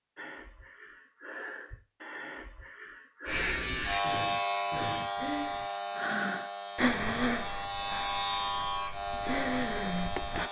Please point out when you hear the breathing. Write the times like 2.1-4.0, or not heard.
0.1-10.4.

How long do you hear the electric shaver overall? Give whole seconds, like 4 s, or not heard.
7 s.